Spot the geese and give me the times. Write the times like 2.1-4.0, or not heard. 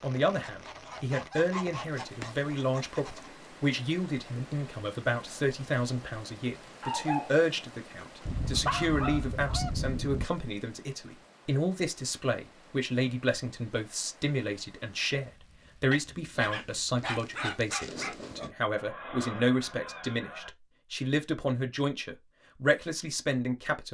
0.3-3.3, 8.2-10.2, 18.8-20.5.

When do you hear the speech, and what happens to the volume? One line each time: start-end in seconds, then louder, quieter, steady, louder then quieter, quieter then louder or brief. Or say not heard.
0.0-23.9 steady.